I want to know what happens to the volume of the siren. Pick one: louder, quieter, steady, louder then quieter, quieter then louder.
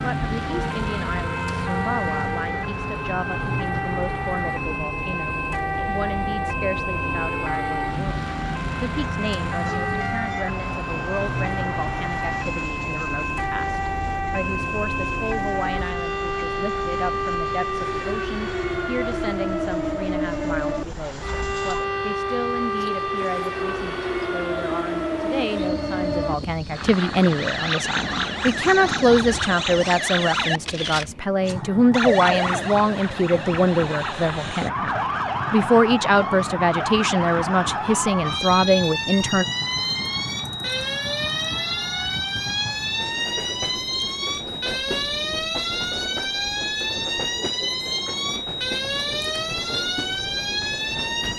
steady.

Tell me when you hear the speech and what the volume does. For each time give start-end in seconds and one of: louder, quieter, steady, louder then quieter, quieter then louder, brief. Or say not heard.
0.0-39.5 louder.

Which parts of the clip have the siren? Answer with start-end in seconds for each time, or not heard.
0.0-51.3.